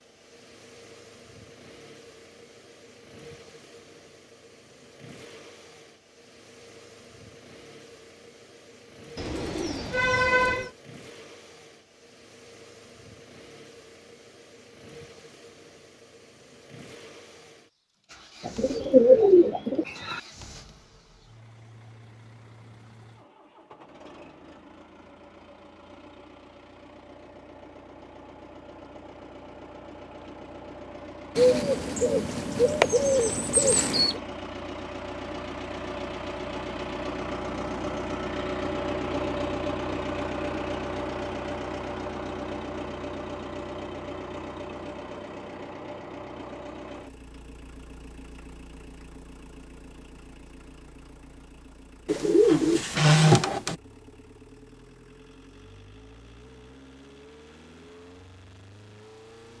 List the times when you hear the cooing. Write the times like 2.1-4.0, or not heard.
9.2-10.7, 18.4-20.2, 31.4-34.1, 52.0-53.8.